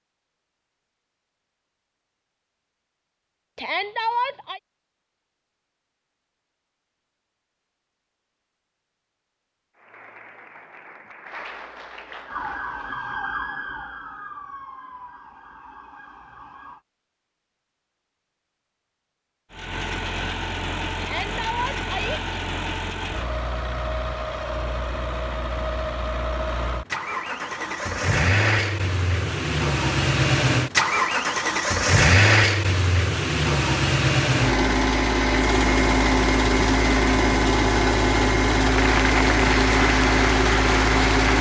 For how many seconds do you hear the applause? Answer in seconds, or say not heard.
6 s.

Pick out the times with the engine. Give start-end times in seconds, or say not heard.
19.5-41.3.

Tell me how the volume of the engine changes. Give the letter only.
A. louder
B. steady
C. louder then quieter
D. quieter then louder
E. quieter
A.